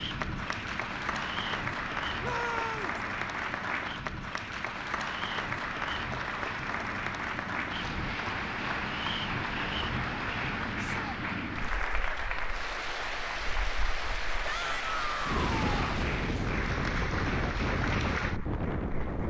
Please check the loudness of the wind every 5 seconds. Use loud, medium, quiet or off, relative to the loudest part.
medium, medium, medium, loud.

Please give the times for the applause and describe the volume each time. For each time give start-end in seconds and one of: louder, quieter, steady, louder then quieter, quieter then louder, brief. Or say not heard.
0.0-19.2 steady.